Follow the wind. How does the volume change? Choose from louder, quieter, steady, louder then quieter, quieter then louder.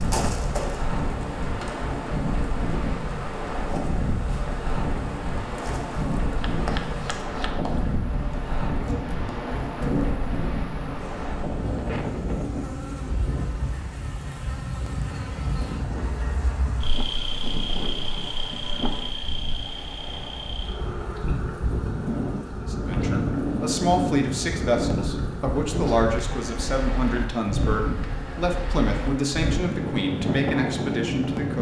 quieter then louder.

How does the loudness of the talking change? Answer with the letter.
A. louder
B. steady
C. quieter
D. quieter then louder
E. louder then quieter
B.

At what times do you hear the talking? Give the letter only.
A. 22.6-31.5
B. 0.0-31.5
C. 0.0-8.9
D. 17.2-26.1
A.